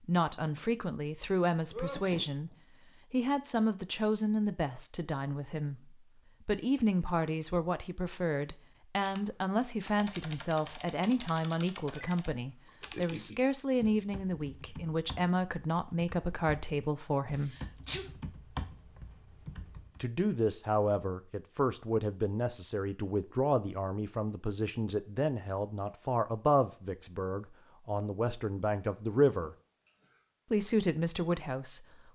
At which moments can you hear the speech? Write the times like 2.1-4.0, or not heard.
0.0-2.5, 3.1-17.6, 20.0-29.6, 30.5-32.1.